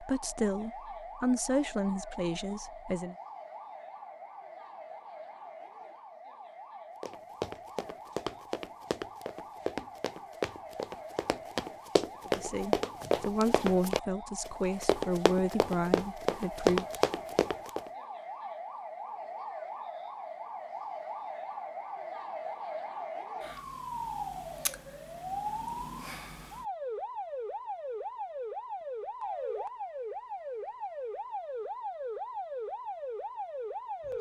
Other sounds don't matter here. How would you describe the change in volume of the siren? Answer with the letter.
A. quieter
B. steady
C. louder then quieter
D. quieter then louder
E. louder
E.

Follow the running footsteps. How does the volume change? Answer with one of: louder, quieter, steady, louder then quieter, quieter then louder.
louder.